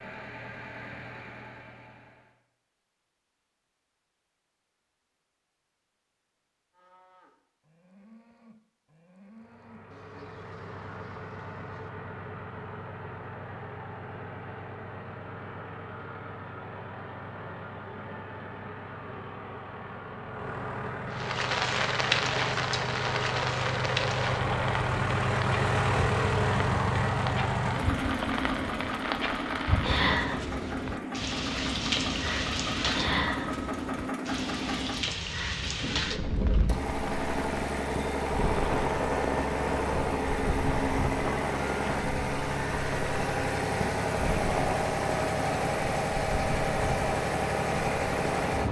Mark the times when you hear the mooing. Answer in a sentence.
The mooing can be heard from 6.7 to 11.9 s.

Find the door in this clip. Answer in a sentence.
You can't hear the door here.